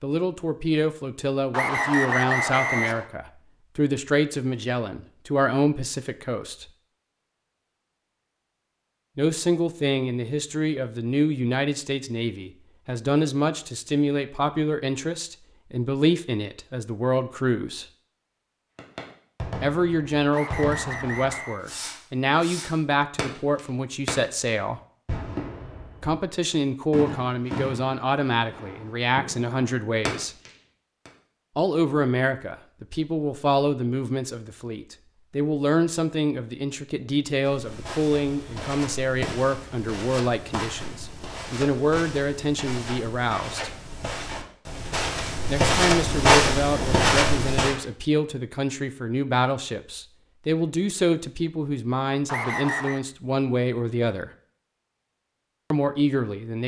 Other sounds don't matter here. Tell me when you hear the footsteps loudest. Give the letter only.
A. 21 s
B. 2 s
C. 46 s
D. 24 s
C.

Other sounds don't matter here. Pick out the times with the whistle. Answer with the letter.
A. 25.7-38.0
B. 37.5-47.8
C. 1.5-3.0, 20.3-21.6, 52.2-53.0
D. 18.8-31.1
C.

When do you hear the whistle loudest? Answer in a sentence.
The volume of the whistle peaks at 2 seconds.